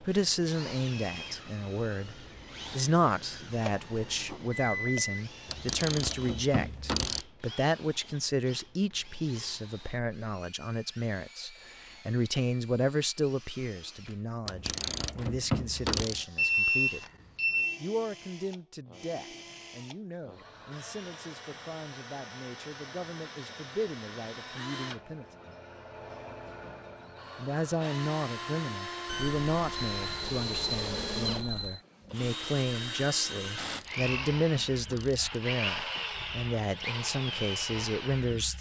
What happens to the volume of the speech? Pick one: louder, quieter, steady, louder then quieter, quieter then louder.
quieter then louder.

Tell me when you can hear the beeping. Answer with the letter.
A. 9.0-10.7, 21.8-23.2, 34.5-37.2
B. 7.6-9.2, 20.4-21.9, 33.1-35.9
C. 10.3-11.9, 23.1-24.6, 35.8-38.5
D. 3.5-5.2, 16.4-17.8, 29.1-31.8
D.